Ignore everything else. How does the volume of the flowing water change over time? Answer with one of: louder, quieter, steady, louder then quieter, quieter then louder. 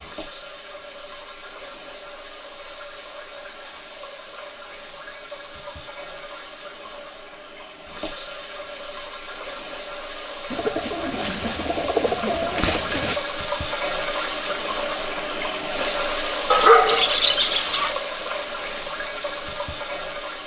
louder.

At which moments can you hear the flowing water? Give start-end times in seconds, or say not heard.
0.0-20.4.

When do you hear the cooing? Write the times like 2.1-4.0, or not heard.
10.5-13.2.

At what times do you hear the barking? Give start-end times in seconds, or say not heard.
16.5-17.9.